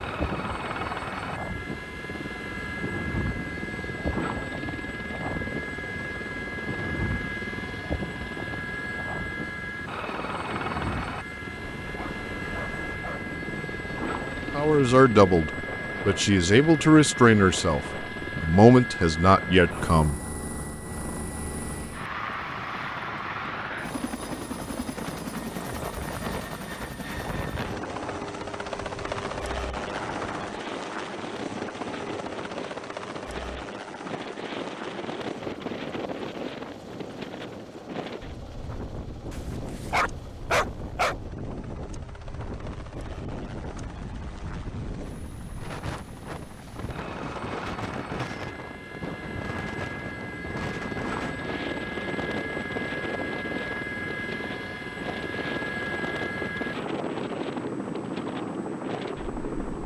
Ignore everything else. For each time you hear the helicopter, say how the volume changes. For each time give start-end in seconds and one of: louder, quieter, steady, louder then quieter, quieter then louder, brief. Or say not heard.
0.0-59.8 quieter then louder.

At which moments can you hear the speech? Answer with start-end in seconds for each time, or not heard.
14.5-20.2.